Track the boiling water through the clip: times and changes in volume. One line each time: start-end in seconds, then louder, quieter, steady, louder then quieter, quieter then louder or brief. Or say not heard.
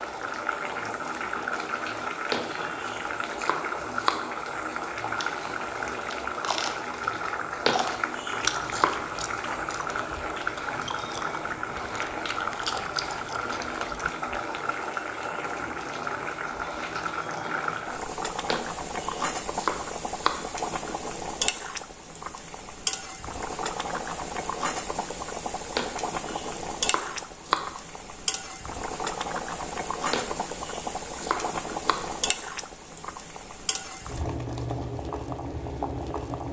0.0-36.4 steady.